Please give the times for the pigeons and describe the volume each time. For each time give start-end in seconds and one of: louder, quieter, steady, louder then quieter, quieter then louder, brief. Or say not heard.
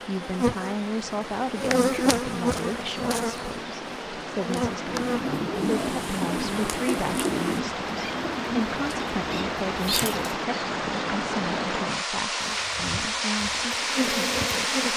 4.8-10.3 quieter.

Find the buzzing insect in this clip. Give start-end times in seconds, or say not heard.
0.0-7.5, 12.3-14.9.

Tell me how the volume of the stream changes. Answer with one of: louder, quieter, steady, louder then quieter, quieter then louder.
louder.